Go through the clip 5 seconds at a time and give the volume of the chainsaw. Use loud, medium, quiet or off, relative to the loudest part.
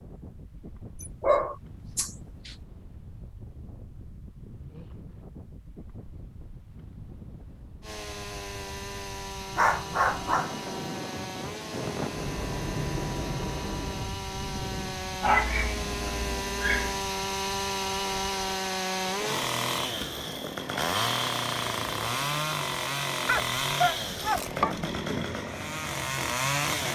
off, medium, medium, loud, loud, loud.